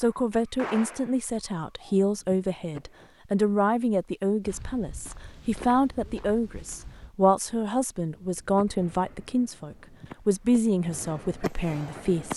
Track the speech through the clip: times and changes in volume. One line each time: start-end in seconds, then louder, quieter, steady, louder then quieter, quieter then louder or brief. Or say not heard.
0.0-12.3 steady.